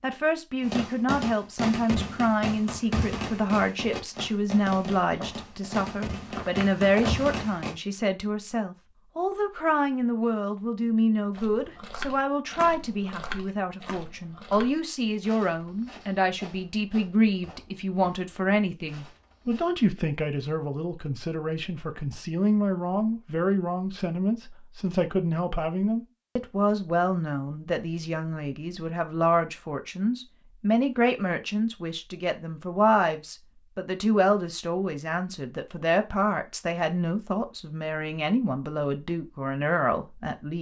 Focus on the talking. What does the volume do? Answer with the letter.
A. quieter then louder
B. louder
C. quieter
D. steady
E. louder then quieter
D.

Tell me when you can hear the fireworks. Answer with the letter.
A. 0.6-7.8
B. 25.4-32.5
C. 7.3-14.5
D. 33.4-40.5
A.